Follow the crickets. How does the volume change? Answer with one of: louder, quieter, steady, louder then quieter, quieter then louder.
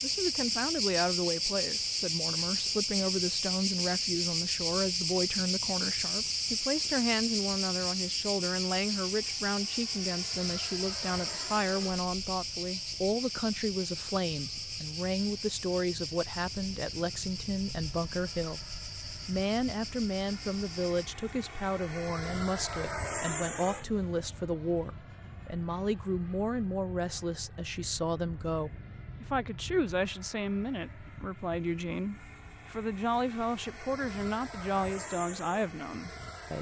quieter.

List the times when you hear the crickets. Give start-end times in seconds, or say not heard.
0.0-21.1.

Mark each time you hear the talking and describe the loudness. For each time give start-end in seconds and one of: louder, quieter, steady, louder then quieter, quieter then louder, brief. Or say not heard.
0.0-36.5 steady.